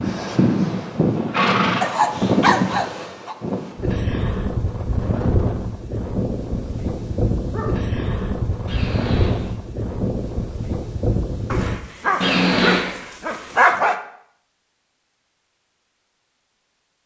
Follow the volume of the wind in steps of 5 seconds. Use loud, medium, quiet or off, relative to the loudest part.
loud, loud, loud, off.